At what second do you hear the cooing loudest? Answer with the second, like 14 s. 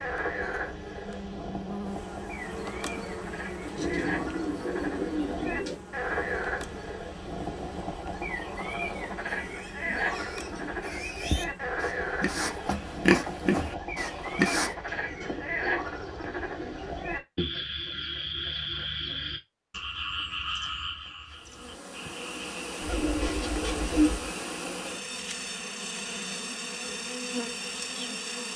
24 s.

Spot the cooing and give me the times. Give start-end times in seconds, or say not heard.
3.8-5.8, 14.8-16.9, 22.8-24.3.